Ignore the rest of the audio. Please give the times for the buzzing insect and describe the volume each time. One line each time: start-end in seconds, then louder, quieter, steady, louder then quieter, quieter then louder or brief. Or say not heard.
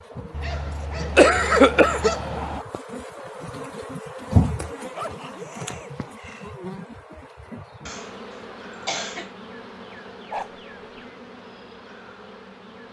0.0-12.8 louder then quieter.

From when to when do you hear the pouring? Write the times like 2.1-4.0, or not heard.
not heard.